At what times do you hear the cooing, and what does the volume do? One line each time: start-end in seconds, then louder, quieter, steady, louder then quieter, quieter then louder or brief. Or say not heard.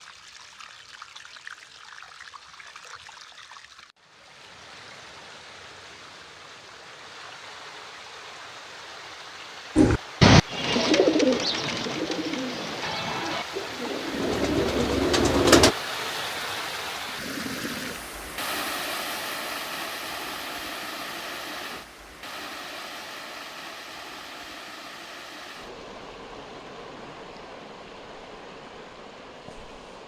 9.8-15.8 quieter then louder.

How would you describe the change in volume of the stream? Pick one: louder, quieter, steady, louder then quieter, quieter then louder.
louder then quieter.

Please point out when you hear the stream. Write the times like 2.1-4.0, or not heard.
0.0-30.0.